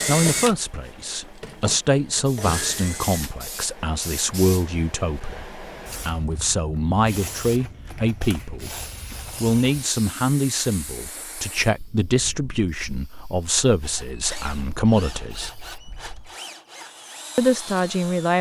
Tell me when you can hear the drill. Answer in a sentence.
You can hear the drill from 0.0 to 3.4 s and from 13.8 to 18.3 s.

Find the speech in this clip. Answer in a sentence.
You can hear the speech from 0.1 to 15.5 s and from 17.4 to 18.3 s.